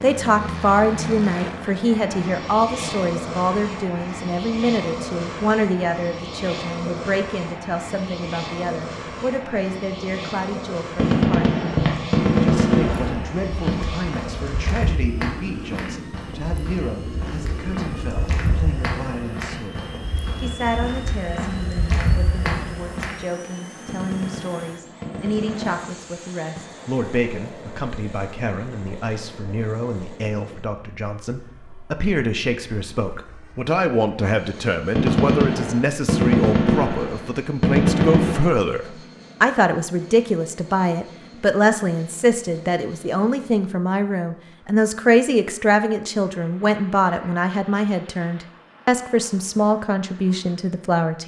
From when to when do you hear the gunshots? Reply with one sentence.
The gunshots can be heard from 10.9 to 13.8 s, from 23.9 to 26.6 s and from 35.0 to 38.5 s.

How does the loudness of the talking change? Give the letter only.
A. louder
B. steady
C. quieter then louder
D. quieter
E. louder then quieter
C.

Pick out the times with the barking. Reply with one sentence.
The barking can't be heard in this clip.